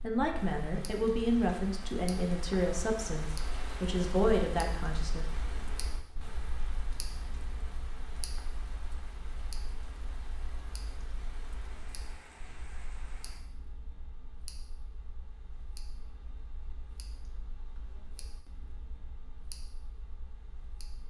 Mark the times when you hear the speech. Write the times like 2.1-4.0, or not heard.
0.0-5.2.